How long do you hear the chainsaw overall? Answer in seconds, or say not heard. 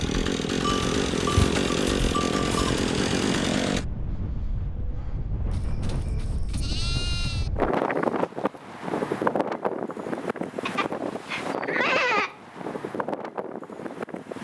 4 s.